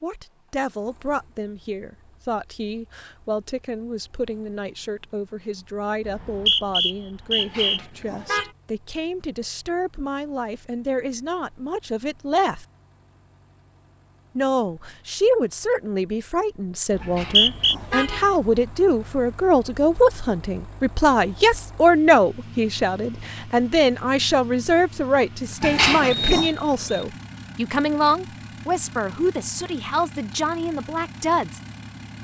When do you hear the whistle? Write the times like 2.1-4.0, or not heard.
6.0-7.8, 16.9-17.8, 26.1-27.1.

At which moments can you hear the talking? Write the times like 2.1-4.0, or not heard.
0.0-12.7, 14.3-31.6.